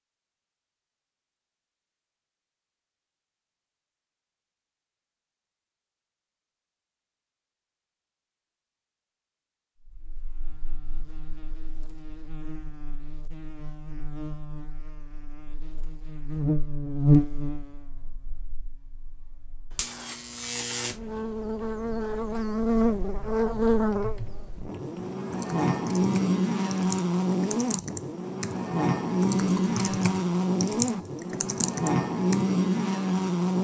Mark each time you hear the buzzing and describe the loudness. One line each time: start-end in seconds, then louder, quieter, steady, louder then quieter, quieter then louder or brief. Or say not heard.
9.8-33.6 louder.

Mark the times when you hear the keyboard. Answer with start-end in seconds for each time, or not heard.
23.7-32.5.